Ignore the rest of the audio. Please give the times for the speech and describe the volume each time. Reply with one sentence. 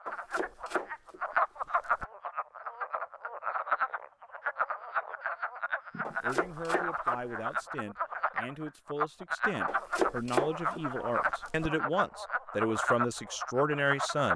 The speech can be heard from 6.2 to 14.3 s, getting louder.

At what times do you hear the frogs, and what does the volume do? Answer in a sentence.
You can hear the frogs from 0.0 to 14.3 s, at a steady volume.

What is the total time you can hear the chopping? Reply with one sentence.
You can hear the chopping for 5 seconds altogether.